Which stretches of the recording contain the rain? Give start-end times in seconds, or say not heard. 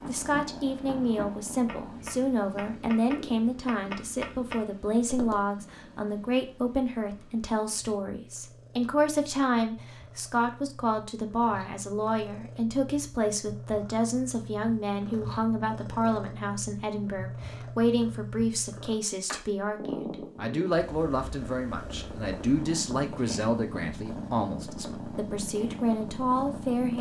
not heard.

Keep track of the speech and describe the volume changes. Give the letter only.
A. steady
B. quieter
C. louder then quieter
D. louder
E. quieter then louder
A.